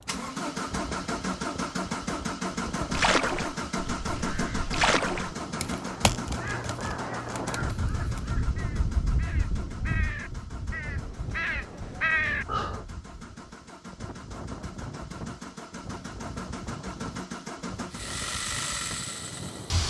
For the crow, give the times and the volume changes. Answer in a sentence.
The crow can be heard from 2.9 to 12.8 s, getting quieter then louder.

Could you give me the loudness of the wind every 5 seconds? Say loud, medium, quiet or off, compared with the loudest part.
medium, loud, medium, medium.